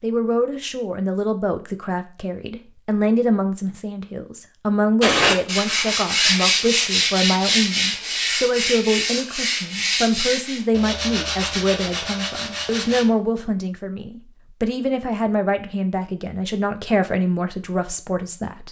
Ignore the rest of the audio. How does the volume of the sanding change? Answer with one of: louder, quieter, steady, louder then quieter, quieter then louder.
quieter.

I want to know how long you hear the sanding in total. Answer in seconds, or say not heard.
8 s.